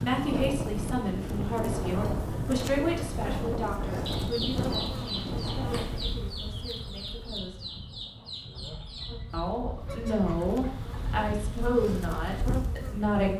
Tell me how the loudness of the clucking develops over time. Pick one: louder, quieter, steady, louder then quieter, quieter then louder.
quieter.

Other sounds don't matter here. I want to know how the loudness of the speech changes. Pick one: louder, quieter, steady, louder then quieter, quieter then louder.
quieter then louder.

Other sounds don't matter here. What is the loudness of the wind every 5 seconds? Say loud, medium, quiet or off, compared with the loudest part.
loud, medium, medium.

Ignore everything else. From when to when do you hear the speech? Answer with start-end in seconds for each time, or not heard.
0.0-7.7, 9.3-13.3.